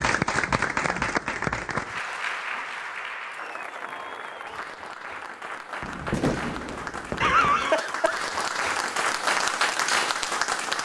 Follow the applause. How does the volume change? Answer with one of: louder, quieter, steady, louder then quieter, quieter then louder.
quieter then louder.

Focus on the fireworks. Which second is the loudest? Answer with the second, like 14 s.
6 s.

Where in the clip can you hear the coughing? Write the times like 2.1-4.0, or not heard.
7.2-8.3.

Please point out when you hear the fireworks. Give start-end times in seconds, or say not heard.
5.8-7.7.